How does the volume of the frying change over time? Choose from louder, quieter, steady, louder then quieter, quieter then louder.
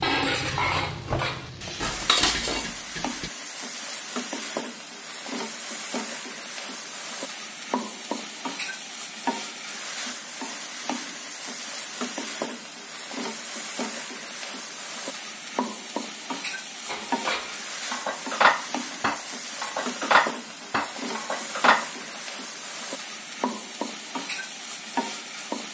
steady.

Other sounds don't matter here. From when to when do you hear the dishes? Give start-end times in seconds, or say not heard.
0.0-3.3, 16.9-22.2.